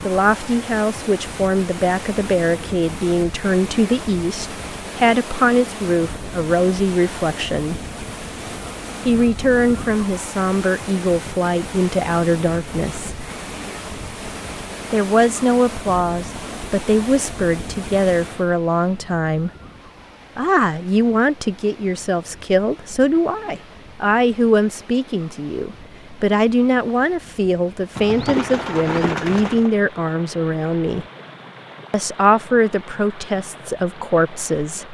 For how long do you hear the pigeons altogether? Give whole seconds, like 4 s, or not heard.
2 s.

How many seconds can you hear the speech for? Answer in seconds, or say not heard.
30 s.